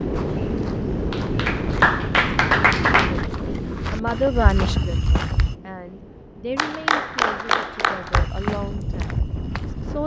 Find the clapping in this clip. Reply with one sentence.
You can hear the clapping from 1.1 to 3.2 s and from 6.5 to 8.3 s.